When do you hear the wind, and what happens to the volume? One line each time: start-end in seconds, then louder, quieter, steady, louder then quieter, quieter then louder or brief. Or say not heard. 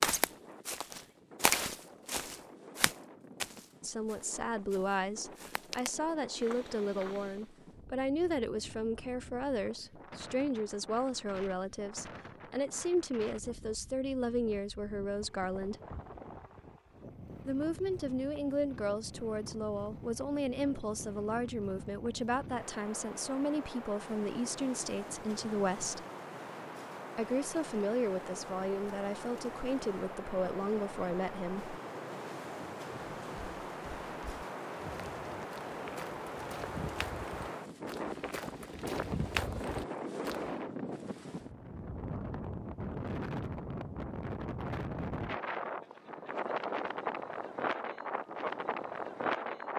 0.1-49.7 louder.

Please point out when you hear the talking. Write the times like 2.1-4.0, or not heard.
3.8-15.8, 17.4-26.1, 27.1-31.8.